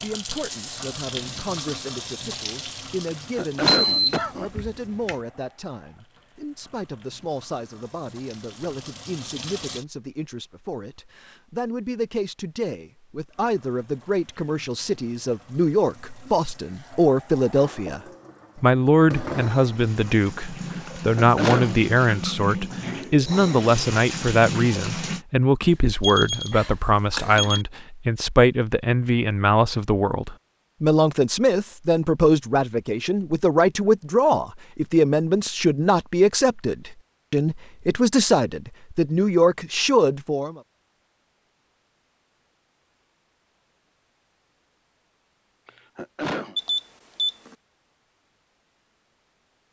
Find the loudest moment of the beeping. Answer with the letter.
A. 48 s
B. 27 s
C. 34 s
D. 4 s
D.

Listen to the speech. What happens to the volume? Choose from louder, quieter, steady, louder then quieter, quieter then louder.
louder.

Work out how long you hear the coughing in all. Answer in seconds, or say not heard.
3 s.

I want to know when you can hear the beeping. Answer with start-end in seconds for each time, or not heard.
3.8-5.2, 26.0-27.6, 46.5-47.5.